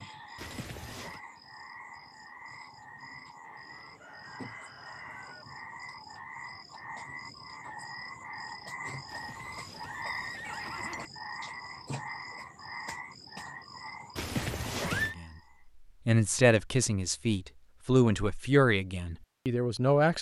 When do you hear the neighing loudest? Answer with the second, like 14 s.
15 s.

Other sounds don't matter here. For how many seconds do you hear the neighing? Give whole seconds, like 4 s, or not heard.
4 s.